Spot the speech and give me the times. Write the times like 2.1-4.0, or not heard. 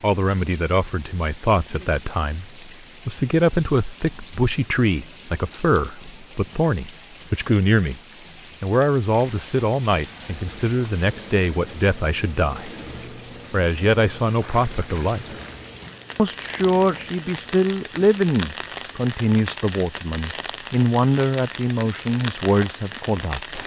0.0-8.0, 8.6-12.7, 13.5-15.3, 16.1-23.6.